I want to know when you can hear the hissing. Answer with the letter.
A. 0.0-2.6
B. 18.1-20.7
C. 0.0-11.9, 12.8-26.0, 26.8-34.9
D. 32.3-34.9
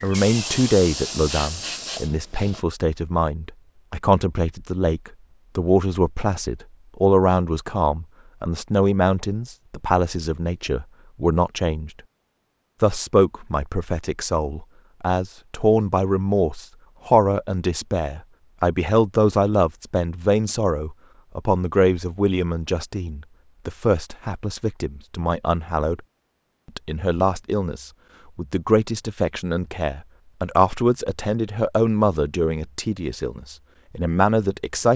A.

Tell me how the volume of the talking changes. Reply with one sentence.
The volume of the talking stays about the same.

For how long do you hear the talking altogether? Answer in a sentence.
You can hear the talking for 33 seconds altogether.